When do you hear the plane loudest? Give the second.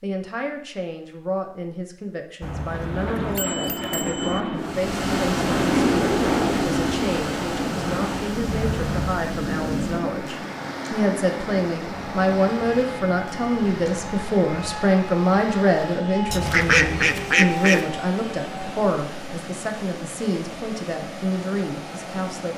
6 s.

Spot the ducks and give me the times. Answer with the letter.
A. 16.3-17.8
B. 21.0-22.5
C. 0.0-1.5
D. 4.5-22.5
A.